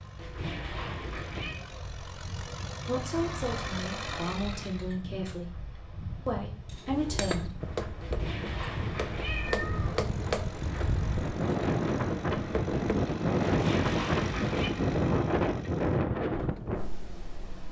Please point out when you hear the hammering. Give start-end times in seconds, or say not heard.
6.7-13.1.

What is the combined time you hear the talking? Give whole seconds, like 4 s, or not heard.
4 s.